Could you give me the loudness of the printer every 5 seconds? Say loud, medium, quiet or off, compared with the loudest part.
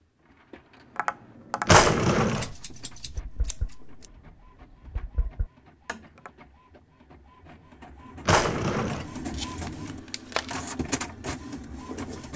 quiet, medium, loud.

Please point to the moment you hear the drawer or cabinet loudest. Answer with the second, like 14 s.
2 s.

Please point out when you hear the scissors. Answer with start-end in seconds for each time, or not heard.
2.4-4.1, 9.3-10.6.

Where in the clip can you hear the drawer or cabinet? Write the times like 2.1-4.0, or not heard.
1.6-2.5, 8.2-9.1.